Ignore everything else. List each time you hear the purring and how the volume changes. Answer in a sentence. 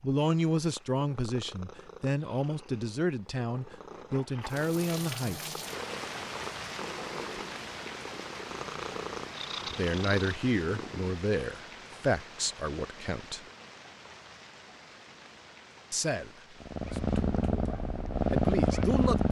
You can hear the purring from 0.0 to 11.2 s, getting louder; and briefly from 16.6 to 19.2 s.